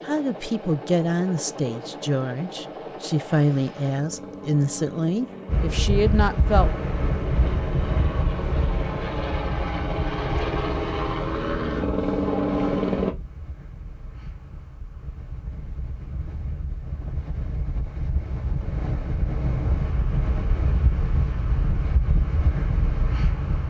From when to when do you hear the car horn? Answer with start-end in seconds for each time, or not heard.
not heard.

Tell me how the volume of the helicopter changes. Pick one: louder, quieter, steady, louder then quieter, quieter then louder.
louder.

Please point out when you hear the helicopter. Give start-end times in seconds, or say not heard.
0.0-13.2.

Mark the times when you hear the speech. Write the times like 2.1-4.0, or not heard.
0.0-6.7.